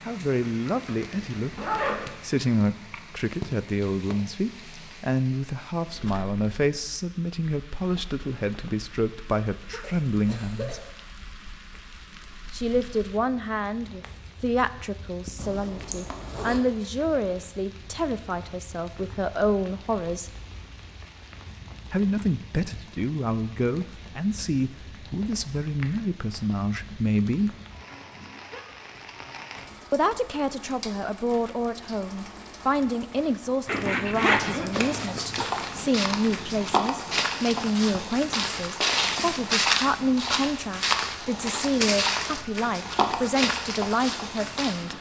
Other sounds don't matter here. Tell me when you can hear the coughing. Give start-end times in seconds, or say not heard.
9.7-10.8, 34.0-35.2.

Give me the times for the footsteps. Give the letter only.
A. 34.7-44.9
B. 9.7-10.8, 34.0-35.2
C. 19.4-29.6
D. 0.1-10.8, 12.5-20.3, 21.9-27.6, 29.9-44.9
A.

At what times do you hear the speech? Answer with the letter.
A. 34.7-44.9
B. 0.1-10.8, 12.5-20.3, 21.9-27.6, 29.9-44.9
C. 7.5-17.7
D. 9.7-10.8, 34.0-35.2
B.